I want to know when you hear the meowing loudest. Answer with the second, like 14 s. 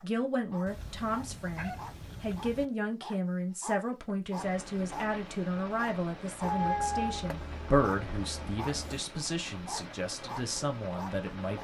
7 s.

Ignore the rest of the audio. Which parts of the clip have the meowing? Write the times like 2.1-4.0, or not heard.
0.7-2.6, 6.4-9.0.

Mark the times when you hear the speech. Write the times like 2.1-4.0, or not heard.
0.0-11.5.